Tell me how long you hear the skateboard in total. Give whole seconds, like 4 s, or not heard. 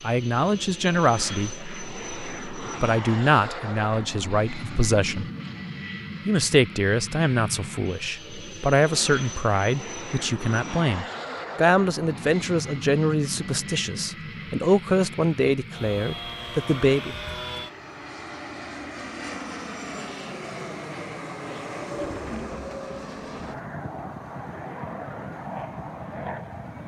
not heard.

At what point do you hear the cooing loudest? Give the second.
22 s.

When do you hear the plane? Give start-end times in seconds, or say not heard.
0.0-26.8.